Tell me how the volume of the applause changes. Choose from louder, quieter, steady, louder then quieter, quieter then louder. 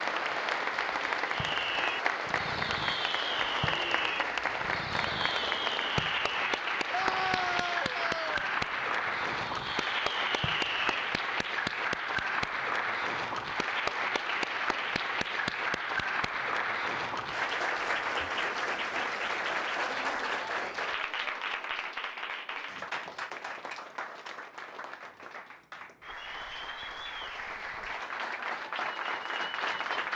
quieter.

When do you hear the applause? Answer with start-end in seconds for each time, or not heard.
0.0-30.1.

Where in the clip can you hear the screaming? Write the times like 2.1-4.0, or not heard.
6.9-8.4.